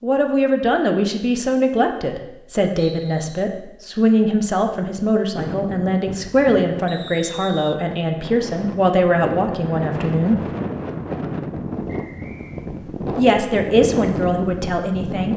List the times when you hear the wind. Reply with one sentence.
The wind can be heard from 5.3 to 15.3 s.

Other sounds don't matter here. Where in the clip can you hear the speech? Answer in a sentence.
You can hear the speech from 0.0 to 10.4 s and from 13.2 to 15.3 s.